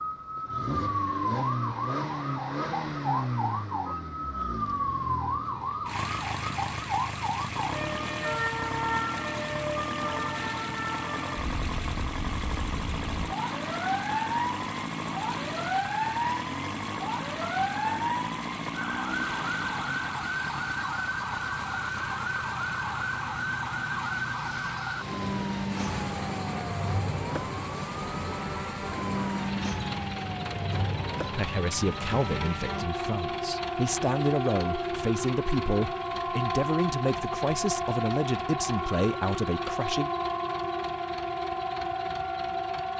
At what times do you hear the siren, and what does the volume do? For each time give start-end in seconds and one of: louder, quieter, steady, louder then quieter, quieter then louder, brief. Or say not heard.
0.0-42.9 steady.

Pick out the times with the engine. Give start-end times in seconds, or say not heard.
0.0-42.9.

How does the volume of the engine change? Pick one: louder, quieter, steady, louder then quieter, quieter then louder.
quieter.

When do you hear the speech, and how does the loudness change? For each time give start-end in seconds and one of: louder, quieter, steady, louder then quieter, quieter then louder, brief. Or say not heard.
31.3-40.1 steady.